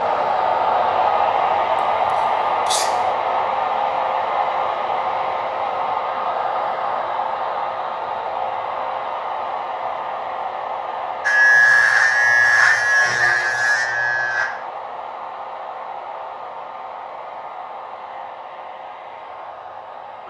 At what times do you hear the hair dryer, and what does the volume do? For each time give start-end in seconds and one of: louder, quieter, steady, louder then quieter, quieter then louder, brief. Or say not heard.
0.0-20.2 quieter.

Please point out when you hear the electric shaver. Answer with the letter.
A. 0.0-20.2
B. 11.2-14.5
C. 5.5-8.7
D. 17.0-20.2
B.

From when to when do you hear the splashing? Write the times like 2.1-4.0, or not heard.
not heard.